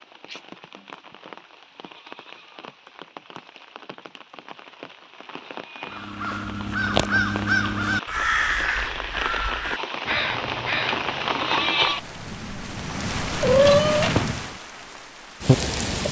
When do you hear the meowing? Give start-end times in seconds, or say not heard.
13.4-14.3.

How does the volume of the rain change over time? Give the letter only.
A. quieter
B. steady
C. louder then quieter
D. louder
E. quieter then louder
D.